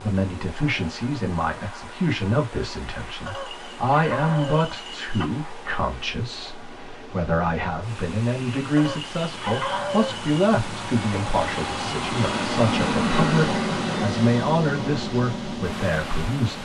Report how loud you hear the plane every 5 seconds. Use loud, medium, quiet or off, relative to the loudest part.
quiet, quiet, loud, medium.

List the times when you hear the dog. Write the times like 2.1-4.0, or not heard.
3.2-5.2, 8.8-10.3.